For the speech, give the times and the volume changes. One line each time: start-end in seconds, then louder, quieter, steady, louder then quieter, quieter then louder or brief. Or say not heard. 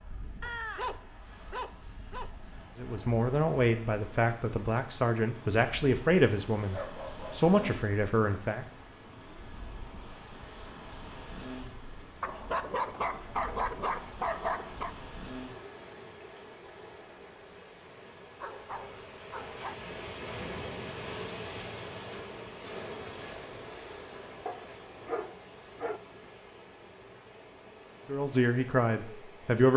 2.8-8.7 steady
28.1-29.7 brief.